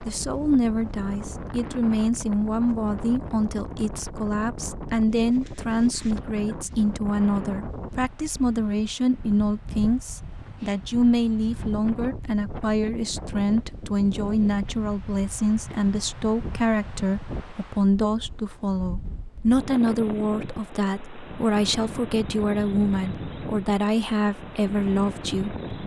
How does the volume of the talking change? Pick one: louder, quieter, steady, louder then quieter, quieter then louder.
steady.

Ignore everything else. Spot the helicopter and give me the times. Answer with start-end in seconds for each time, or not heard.
not heard.